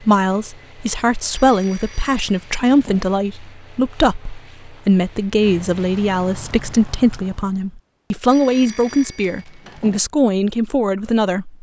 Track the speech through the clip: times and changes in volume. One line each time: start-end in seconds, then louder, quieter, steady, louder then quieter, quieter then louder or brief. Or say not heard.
0.0-11.5 steady.